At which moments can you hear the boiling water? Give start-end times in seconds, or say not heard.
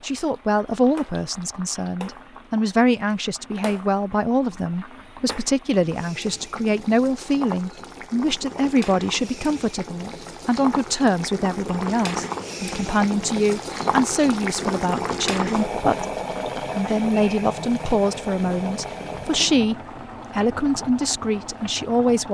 0.0-22.2.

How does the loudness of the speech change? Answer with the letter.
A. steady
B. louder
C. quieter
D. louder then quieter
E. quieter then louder
A.